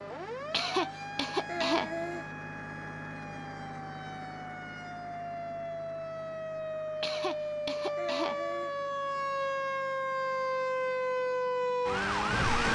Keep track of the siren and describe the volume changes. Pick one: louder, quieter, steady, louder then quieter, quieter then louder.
louder.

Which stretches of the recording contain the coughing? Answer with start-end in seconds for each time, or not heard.
0.5-2.2, 7.0-8.8.